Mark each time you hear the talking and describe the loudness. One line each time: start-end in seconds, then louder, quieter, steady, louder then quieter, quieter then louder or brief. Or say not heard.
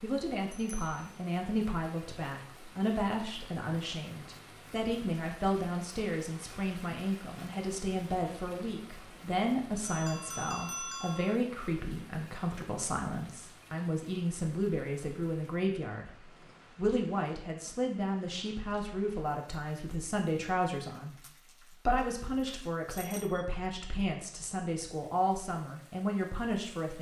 0.0-26.9 steady.